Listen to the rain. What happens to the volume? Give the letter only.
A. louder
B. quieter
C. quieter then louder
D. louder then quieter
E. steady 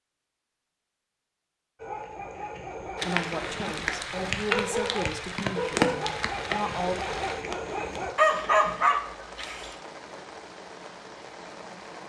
B.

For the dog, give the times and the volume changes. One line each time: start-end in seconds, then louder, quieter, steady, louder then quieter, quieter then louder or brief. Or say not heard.
1.8-9.8 louder.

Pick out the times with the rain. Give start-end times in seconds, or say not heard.
3.0-12.0.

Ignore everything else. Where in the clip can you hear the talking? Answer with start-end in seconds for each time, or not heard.
2.9-7.0.